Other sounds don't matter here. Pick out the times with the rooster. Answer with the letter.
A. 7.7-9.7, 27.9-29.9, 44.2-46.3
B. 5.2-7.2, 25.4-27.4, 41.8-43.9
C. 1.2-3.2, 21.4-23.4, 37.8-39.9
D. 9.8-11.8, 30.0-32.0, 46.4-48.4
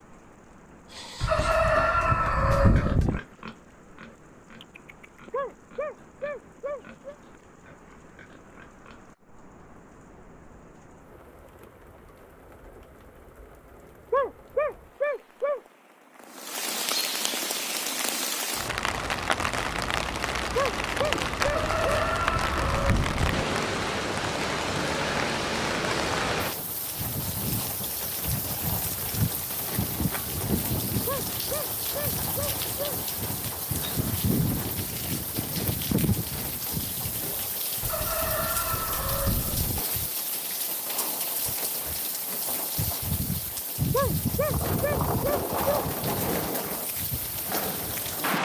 C.